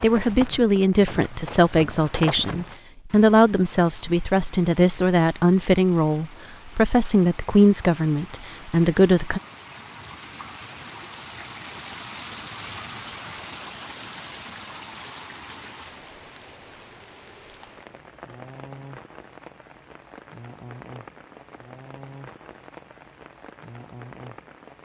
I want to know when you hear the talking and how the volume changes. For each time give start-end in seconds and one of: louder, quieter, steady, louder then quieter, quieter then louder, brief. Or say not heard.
0.0-9.4 steady.